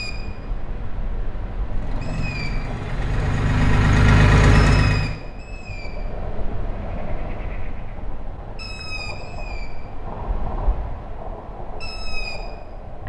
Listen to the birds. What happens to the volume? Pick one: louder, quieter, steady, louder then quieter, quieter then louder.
steady.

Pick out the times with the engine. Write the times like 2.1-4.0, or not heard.
1.6-5.2.